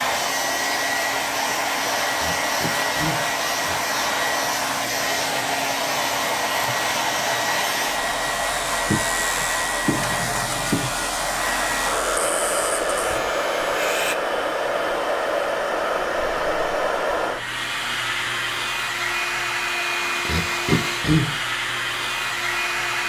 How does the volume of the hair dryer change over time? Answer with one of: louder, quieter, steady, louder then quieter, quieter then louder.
steady.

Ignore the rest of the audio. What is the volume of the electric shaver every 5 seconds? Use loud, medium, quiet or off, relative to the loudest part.
loud, loud, loud, off, off.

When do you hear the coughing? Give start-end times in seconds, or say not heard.
2.1-3.8, 20.2-21.3.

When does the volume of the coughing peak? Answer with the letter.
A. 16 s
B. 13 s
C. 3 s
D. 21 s
D.